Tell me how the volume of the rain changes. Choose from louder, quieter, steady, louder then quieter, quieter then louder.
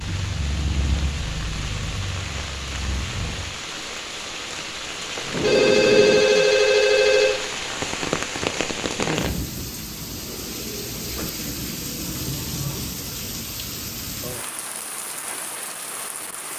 louder then quieter.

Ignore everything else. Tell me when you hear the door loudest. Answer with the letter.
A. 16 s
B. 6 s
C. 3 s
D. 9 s
B.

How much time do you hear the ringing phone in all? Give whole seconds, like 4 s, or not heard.
2 s.